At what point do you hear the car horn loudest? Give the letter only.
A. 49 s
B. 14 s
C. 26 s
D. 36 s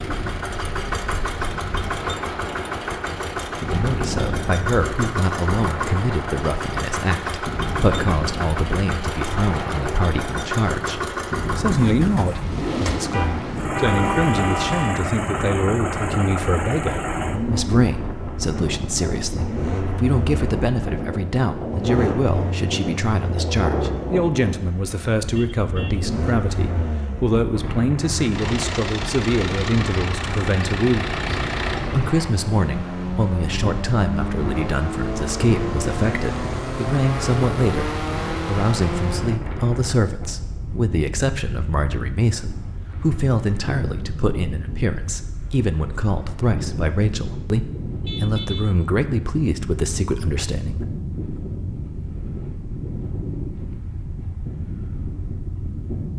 B.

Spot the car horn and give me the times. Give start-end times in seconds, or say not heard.
13.1-15.1, 25.3-26.0, 48.0-48.6.